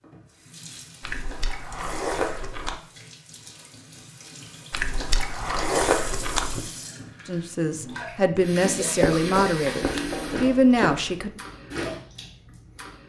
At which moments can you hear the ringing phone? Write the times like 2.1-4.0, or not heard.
not heard.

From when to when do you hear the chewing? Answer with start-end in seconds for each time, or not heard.
1.0-2.8, 4.7-6.7, 9.0-11.2.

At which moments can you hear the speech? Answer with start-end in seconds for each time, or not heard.
7.2-11.3.